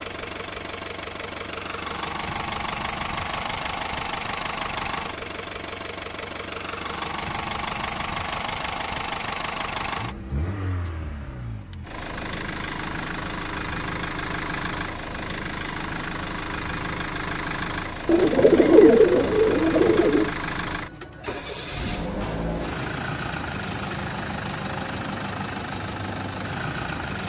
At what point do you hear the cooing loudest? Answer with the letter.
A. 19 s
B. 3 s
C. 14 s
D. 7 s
A.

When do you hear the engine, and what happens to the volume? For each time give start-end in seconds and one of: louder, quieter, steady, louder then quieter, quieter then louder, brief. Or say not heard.
0.0-27.2 steady.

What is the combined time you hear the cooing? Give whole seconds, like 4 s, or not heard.
2 s.